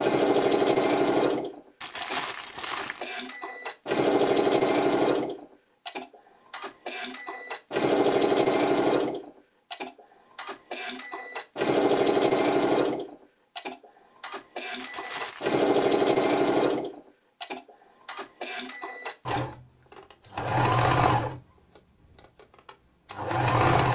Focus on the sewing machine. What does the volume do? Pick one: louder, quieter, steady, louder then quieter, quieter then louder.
steady.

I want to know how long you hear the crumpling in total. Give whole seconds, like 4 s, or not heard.
2 s.